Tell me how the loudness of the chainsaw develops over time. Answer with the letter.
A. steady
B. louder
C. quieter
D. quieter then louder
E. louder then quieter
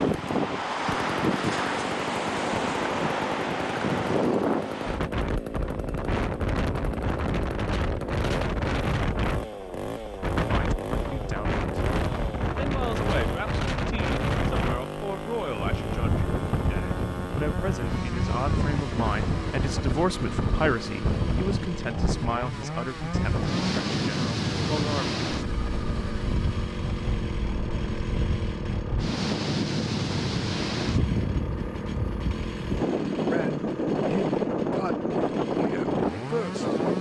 A.